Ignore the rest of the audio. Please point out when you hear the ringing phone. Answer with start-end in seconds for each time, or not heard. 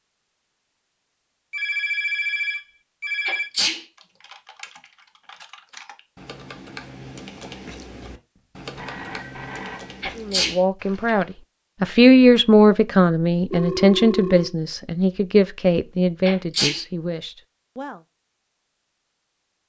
1.5-3.5, 8.8-9.9, 13.5-14.5.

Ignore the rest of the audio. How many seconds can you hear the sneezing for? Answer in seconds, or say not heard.
2 s.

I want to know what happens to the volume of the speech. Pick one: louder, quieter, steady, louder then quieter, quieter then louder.
louder then quieter.